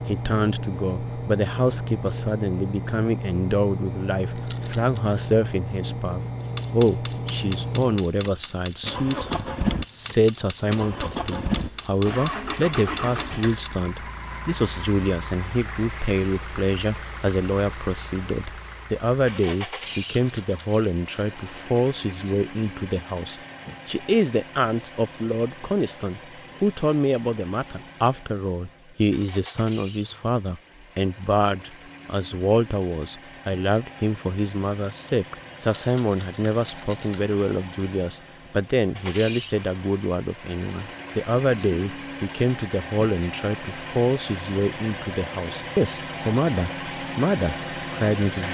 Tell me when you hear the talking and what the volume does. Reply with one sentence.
The talking can be heard from 0.1 to 48.4 s, at a steady volume.